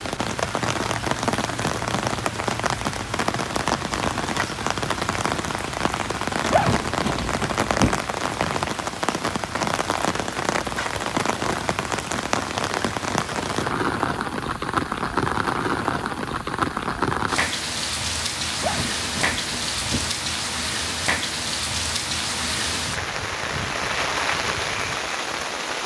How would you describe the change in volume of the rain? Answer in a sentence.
The volume of the rain stays about the same.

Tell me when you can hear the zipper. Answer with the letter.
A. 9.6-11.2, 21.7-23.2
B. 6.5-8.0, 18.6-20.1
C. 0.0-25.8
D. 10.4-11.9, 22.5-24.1
B.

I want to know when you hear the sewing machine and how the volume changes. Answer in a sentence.
The sewing machine can't be heard in this clip.